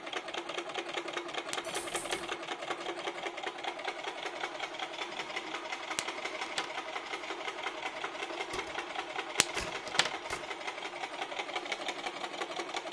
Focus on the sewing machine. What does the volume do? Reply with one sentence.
The loudness of the sewing machine stays about the same.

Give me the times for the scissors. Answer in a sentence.
You can hear the scissors from 1.5 to 2.2 s, from 6.0 to 6.7 s and from 9.4 to 10.1 s.